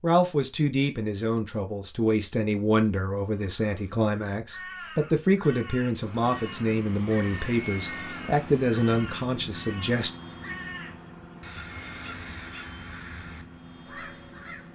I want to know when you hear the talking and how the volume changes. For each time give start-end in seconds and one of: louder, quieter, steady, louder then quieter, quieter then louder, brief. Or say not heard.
0.0-10.1 steady.